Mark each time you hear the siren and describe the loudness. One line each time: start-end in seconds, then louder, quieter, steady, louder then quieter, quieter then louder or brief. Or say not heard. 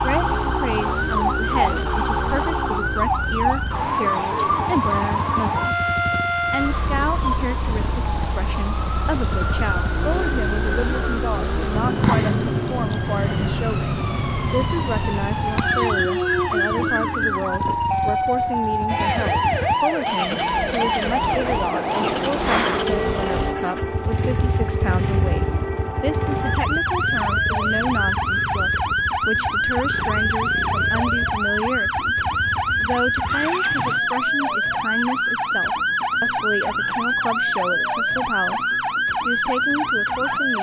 0.0-40.5 steady.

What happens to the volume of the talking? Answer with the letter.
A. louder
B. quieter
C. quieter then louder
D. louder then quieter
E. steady
E.